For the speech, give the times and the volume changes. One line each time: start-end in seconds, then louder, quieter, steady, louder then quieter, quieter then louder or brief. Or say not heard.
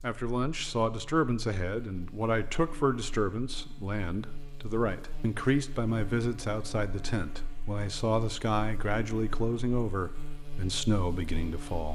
0.0-11.8 steady.